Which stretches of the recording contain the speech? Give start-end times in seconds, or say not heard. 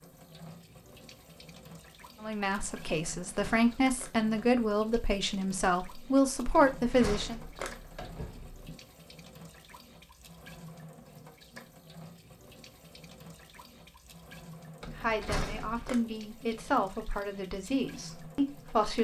2.2-7.4, 14.9-18.9.